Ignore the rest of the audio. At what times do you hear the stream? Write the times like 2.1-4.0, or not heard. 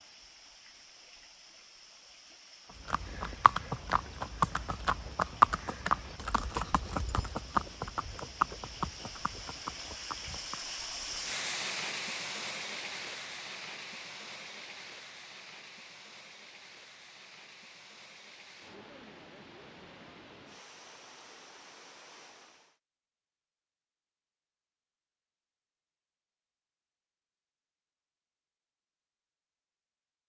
0.0-22.8.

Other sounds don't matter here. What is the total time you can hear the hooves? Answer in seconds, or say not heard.
8 s.